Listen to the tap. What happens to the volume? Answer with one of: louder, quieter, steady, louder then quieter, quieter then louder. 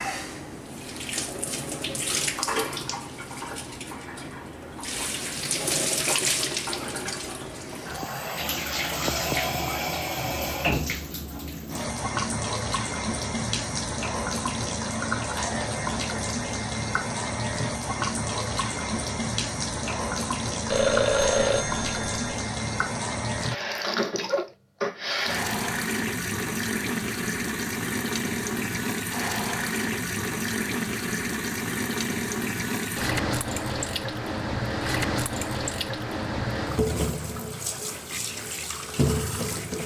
steady.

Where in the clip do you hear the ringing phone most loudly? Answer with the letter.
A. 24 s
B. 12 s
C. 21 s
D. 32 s
C.